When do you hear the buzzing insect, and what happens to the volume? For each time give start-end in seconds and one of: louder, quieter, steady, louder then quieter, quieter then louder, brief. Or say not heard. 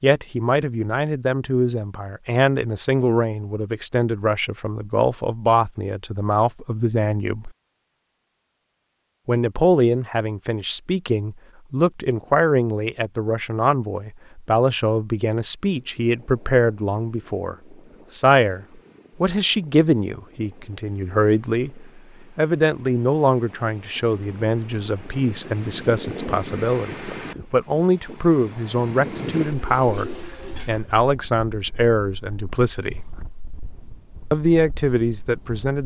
not heard.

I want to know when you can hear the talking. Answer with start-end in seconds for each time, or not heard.
0.0-7.5, 9.2-33.1, 34.3-35.8.